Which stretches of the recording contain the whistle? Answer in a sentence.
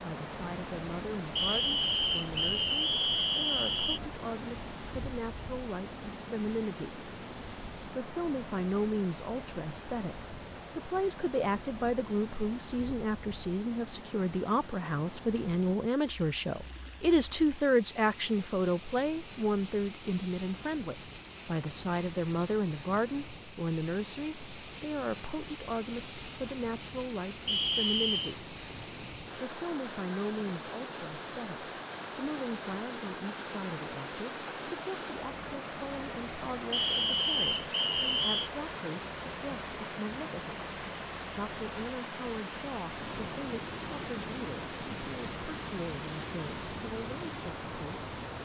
The whistle can be heard from 1.4 to 4.0 s, from 27.4 to 28.4 s and from 36.7 to 38.5 s.